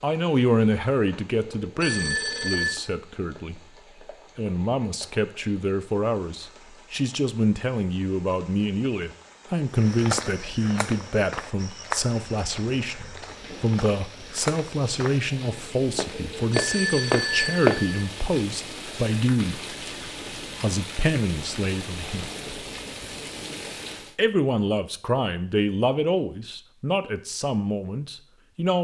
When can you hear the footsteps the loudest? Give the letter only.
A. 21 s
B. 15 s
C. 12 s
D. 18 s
D.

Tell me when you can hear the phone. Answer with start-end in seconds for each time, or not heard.
1.4-2.8, 16.1-18.0.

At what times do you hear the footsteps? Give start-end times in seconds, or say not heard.
9.8-15.2, 15.9-18.2.